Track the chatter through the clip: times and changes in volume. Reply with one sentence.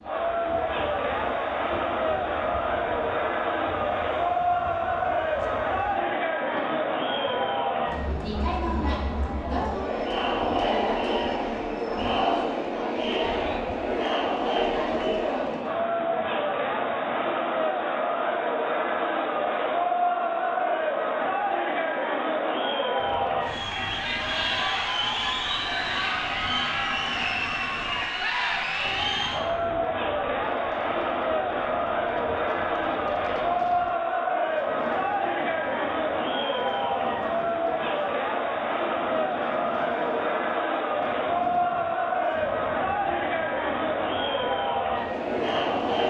You can hear the chatter from 0.0 to 46.0 s, at a steady volume.